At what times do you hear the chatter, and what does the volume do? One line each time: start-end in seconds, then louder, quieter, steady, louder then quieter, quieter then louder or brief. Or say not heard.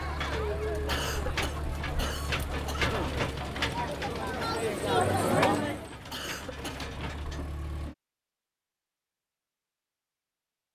0.0-5.9 quieter then louder.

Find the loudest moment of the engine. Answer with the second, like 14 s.
3 s.